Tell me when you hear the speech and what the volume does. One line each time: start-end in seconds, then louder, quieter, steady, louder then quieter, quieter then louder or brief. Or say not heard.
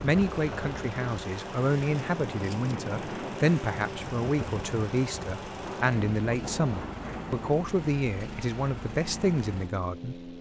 0.0-10.3 steady.